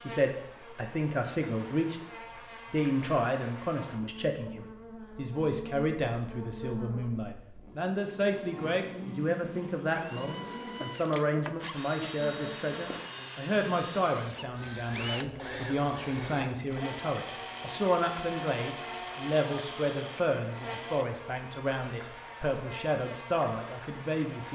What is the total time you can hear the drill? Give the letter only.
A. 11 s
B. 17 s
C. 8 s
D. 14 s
A.